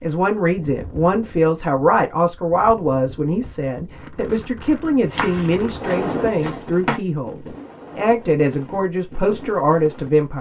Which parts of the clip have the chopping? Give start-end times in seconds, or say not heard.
5.1-7.0.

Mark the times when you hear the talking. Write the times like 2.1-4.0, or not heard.
0.0-10.3.